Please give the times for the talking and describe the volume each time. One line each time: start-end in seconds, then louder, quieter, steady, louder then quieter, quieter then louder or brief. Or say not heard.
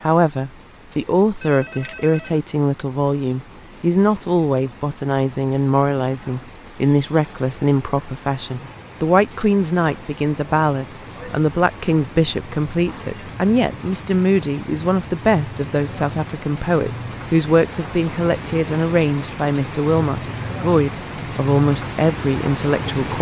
0.0-23.1 steady.